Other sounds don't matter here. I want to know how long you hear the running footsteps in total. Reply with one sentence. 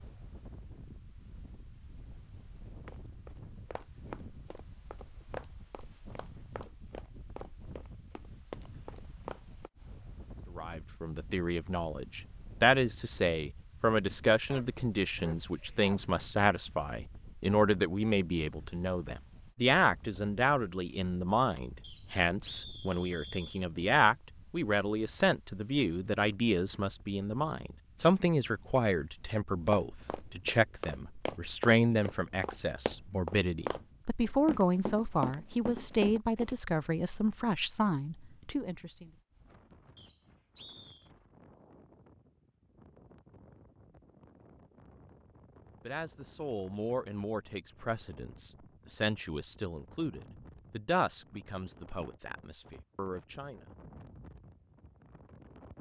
You can hear the running footsteps for 14 seconds altogether.